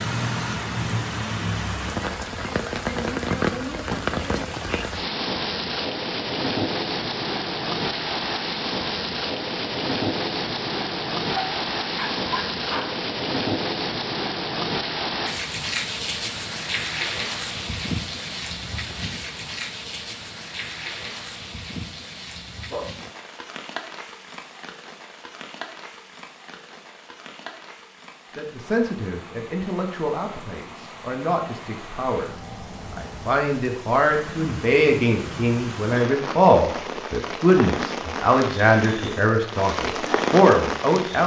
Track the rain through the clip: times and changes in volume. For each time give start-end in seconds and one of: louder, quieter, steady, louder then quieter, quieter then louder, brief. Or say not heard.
0.0-41.2 quieter then louder.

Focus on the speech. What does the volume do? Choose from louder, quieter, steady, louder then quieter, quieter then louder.
louder.